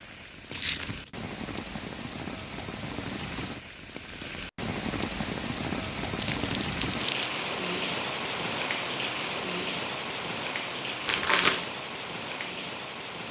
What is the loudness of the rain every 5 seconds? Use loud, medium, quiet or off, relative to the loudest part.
medium, loud, loud.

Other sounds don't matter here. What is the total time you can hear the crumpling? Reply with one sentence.
The crumpling can be heard for 2 seconds in total.